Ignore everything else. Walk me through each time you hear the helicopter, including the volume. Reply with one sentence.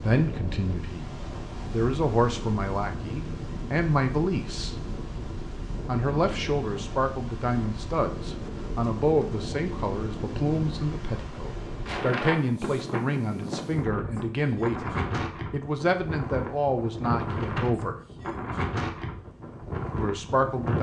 You can't hear the helicopter here.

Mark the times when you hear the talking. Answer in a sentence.
You can hear the talking from 0.0 to 1.1 s, from 1.7 to 4.8 s, from 5.8 to 17.9 s and from 19.9 to 20.7 s.